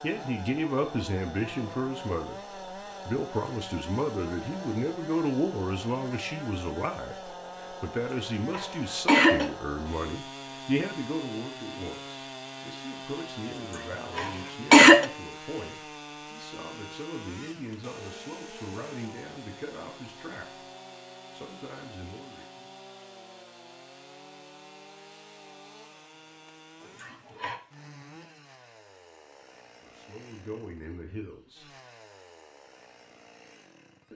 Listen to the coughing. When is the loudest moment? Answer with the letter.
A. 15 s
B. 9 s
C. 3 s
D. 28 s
A.